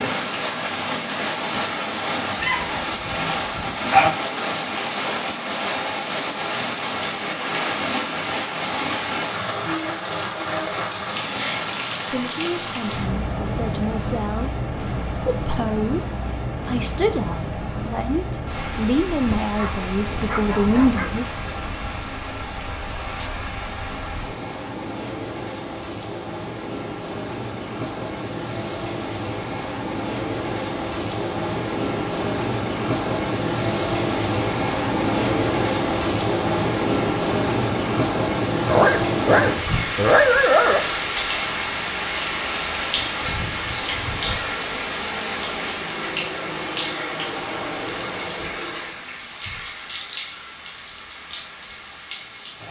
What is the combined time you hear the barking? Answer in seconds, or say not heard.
6 s.